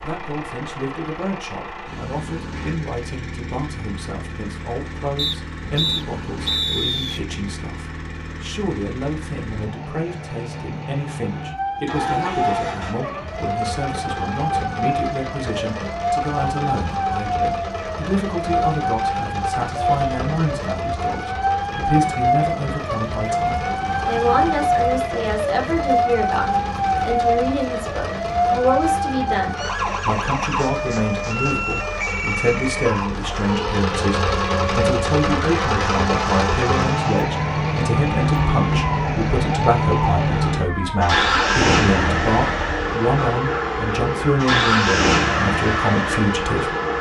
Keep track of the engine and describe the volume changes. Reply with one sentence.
The volume of the engine goes up.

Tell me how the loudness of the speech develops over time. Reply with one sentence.
The volume of the speech goes up.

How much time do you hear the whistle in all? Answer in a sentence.
The whistle can be heard for 2 seconds in total.